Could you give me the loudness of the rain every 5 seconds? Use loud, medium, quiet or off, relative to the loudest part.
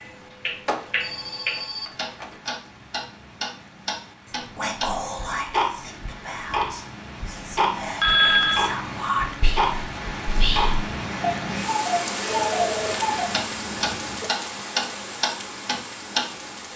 quiet, medium, loud, medium.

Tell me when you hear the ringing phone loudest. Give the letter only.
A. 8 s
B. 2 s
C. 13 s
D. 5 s
A.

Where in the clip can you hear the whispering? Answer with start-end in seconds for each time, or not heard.
4.3-10.8.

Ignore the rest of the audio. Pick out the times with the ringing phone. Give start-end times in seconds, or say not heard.
0.7-2.3, 8.0-8.7, 12.2-14.3.